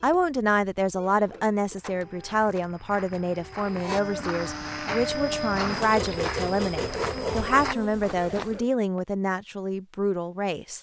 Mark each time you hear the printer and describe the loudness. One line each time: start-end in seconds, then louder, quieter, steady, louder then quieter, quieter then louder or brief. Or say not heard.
0.0-8.0 louder.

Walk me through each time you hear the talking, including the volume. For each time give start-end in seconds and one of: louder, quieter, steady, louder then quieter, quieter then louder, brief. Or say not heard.
0.0-10.7 steady.